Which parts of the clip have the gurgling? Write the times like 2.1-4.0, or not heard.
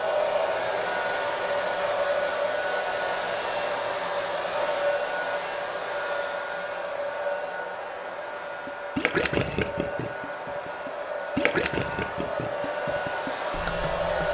8.7-14.2.